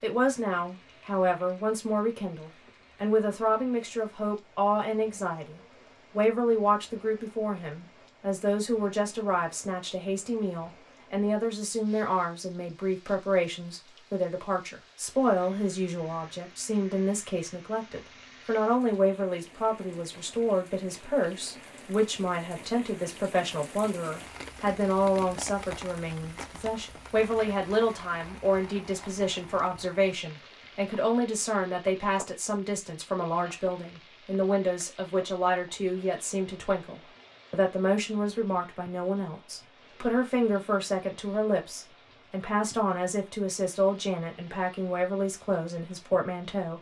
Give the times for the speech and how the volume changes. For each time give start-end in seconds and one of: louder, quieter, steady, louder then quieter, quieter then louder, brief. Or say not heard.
0.0-46.7 steady.